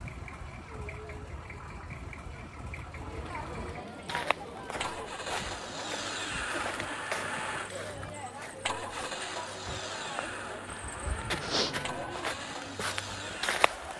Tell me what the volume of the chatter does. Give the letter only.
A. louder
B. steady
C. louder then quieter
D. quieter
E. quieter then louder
A.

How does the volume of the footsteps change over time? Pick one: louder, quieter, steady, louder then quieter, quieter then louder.
quieter then louder.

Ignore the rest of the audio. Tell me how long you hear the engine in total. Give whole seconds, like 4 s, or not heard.
14 s.